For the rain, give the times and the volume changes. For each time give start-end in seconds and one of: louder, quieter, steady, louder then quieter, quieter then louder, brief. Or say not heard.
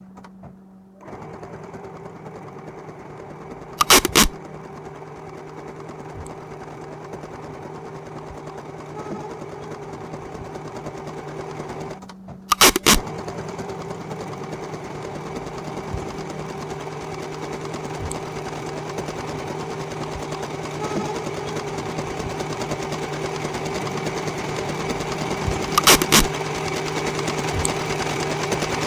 not heard.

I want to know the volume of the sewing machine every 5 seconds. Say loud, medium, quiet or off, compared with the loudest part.
quiet, medium, medium, medium, loud, loud.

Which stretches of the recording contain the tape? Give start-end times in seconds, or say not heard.
3.8-4.3, 12.5-13.0, 25.8-26.3.